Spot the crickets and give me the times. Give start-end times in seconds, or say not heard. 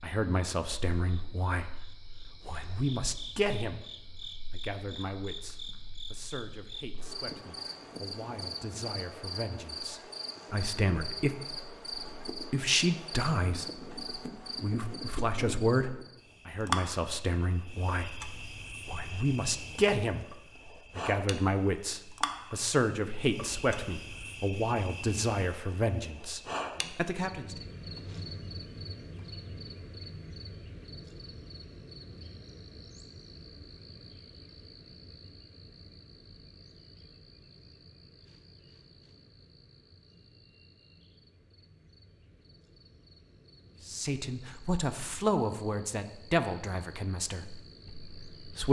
0.0-48.6.